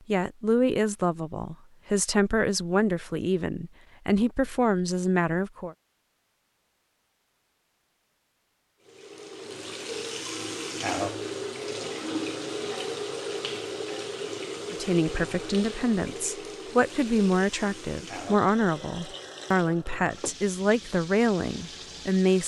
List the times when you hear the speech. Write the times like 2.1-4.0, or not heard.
0.1-5.8, 14.7-22.4.